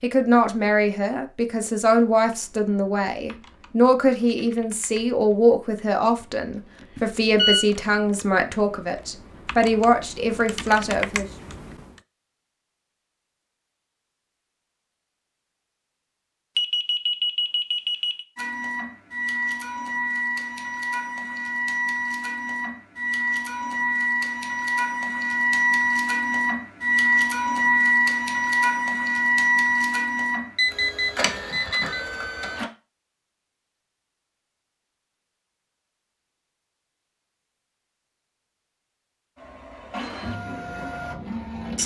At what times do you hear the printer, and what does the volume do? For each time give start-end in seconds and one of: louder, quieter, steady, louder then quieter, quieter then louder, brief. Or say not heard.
18.4-32.6 louder then quieter
39.4-41.8 brief.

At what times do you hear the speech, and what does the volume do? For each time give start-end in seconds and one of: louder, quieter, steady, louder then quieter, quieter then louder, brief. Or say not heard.
0.0-11.2 steady.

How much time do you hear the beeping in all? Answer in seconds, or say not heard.
4 s.